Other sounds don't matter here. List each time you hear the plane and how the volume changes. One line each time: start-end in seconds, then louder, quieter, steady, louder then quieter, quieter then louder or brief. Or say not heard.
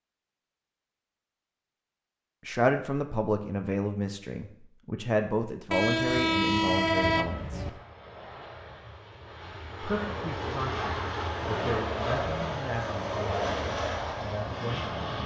7.2-15.2 louder.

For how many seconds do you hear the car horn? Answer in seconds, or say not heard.
2 s.